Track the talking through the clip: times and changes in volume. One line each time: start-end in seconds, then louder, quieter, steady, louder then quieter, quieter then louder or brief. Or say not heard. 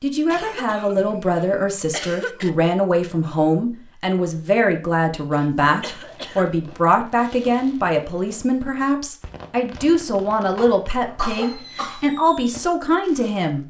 0.0-13.6 steady.